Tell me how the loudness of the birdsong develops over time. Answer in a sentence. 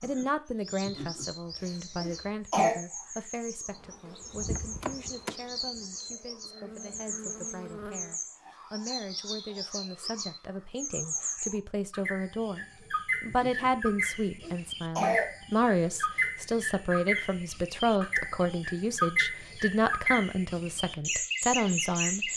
The loudness of the birdsong goes up.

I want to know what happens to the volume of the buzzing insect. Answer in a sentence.
The volume of the buzzing insect goes down, then up.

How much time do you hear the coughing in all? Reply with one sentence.
You can hear the coughing for 3 seconds altogether.